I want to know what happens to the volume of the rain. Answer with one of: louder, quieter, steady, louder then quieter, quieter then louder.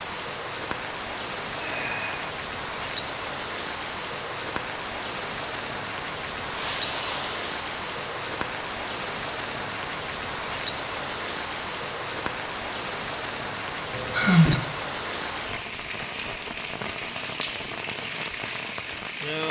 steady.